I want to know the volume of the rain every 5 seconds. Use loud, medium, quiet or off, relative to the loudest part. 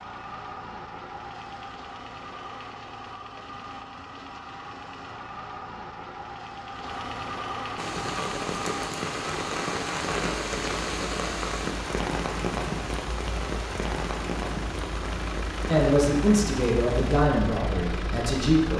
off, loud, loud, medium.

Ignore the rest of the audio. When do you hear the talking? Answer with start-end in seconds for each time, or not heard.
15.7-18.7.